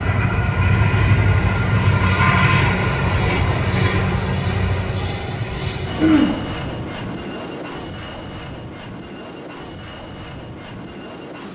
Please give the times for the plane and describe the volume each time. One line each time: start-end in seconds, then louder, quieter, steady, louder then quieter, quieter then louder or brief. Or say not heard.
0.0-11.5 quieter.